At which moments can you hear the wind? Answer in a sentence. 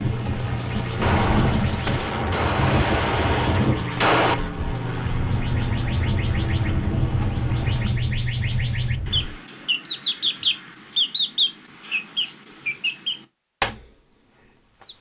The wind can be heard from 0.0 to 9.3 s.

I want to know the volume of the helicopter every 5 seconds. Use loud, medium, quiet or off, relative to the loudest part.
loud, loud, off.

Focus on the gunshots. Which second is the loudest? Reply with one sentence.
The loudest moment of the gunshots is at 4 seconds.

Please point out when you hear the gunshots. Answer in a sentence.
You can hear the gunshots from 1.0 to 4.3 s.